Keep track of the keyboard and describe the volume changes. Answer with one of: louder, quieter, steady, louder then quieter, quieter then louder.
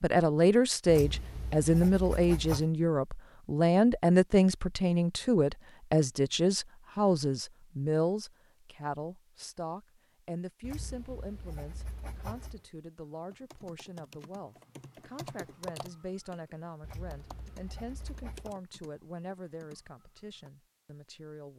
louder then quieter.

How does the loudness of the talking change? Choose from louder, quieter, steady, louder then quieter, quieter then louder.
quieter.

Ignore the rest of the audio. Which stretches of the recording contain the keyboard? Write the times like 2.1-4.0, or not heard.
13.1-20.5.